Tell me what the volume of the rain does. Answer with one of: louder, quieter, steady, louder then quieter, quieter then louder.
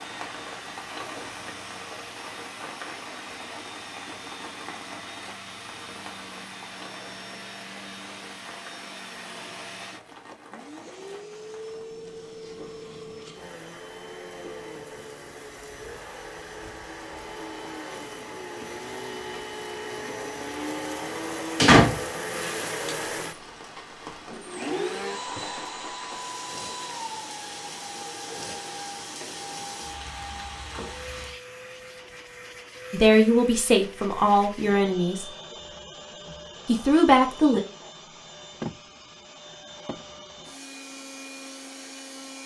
quieter then louder.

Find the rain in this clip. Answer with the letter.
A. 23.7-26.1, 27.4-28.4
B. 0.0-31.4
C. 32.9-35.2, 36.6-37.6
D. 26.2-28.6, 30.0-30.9
B.